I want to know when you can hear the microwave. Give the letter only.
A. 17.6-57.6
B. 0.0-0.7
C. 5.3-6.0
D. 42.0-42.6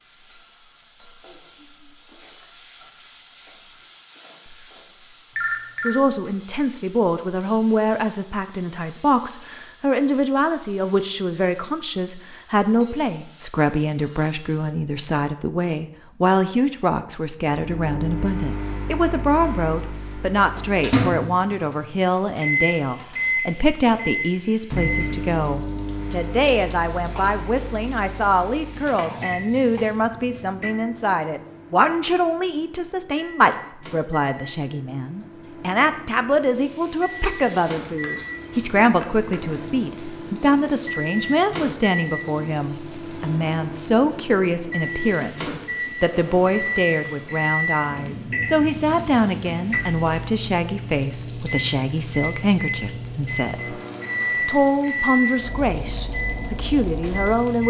A.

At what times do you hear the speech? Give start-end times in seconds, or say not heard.
5.8-53.8, 54.5-57.6.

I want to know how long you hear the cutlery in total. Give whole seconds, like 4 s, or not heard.
not heard.